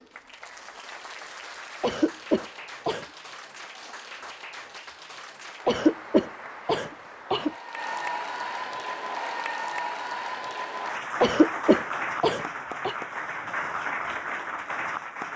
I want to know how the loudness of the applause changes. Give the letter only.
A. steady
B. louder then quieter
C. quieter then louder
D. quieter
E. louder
E.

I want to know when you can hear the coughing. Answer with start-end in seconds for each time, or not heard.
1.8-3.0, 5.7-7.5, 11.2-12.9.